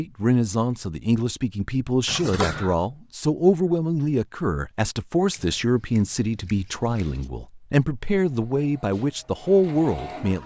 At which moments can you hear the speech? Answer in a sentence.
You can hear the speech from 0.0 to 10.4 s.